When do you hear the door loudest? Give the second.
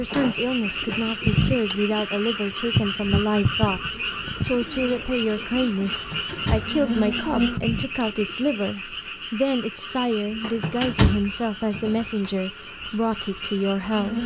11 s.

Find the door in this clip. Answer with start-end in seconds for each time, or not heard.
0.1-1.1, 5.9-6.8, 10.4-12.3.